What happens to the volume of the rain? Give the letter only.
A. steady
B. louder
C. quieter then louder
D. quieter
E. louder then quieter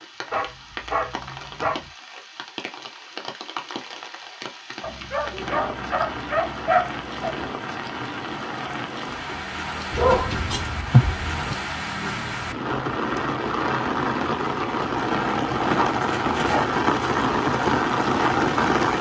B.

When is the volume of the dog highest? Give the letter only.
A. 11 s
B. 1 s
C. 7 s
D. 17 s
A.